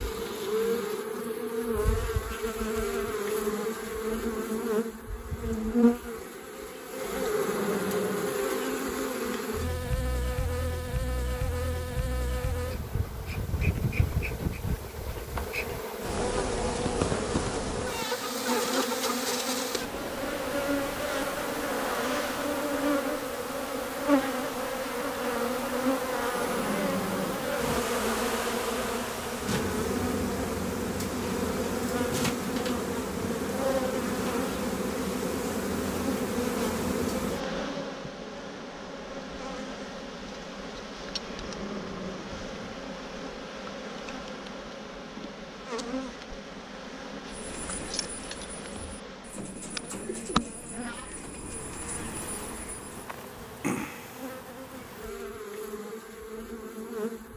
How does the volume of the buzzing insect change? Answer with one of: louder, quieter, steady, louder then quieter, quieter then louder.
quieter.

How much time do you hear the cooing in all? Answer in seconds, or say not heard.
6 s.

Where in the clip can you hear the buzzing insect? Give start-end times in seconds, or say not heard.
0.0-57.3.